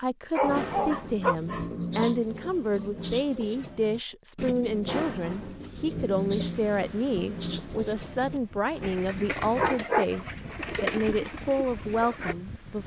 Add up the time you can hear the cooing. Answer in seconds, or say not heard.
12 s.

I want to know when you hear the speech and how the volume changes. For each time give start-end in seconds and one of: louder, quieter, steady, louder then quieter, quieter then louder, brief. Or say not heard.
0.0-12.8 steady.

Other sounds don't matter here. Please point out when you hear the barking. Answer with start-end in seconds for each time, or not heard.
0.3-2.1, 8.7-10.1.